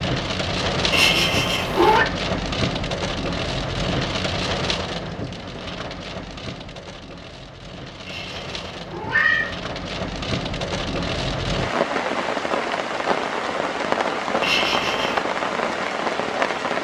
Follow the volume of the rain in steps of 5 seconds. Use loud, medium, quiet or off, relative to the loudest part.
loud, medium, loud, loud.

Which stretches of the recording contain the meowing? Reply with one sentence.
The meowing can be heard from 0.9 to 2.0 s, from 8.1 to 9.6 s and from 14.4 to 15.2 s.